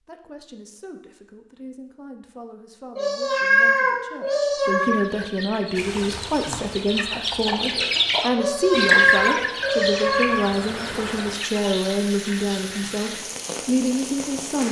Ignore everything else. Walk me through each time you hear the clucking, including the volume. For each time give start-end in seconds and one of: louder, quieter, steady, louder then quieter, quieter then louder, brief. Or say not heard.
4.8-11.7 louder then quieter.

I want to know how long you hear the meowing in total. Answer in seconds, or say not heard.
4 s.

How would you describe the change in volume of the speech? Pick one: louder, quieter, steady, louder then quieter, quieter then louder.
louder.